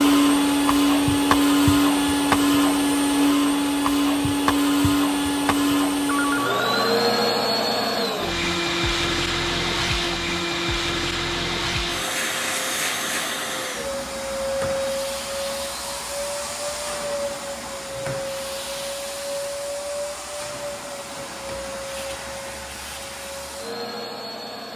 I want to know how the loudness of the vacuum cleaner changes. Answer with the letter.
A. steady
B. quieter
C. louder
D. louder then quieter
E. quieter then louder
B.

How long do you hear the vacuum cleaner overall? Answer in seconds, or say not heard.
25 s.